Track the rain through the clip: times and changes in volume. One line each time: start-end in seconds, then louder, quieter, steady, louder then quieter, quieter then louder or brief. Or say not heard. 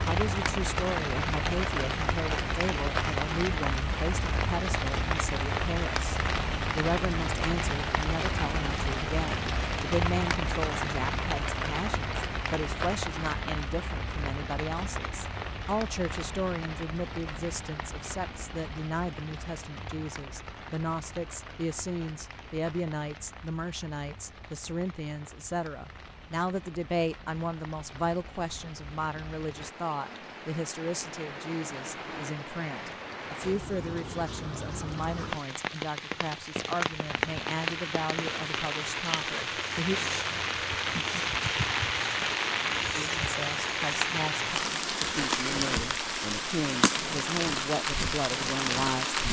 0.0-49.2 quieter then louder.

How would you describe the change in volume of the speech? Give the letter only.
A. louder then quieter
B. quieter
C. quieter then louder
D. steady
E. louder
D.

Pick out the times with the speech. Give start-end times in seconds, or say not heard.
0.1-40.0, 43.0-49.2.